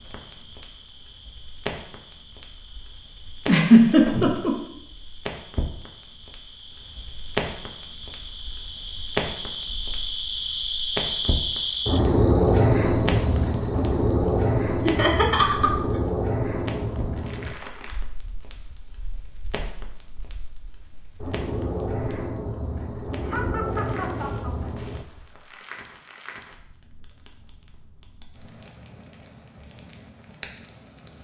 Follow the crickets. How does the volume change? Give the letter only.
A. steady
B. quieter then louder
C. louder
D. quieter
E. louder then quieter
E.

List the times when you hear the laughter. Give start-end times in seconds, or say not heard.
3.5-4.5, 14.8-15.7, 23.2-24.7.